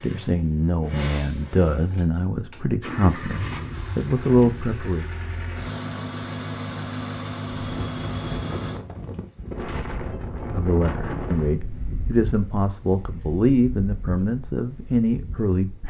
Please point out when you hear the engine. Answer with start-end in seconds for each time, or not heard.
0.0-8.8.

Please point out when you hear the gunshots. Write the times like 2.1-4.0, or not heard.
not heard.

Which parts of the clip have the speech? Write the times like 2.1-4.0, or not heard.
0.0-5.0, 10.4-15.8.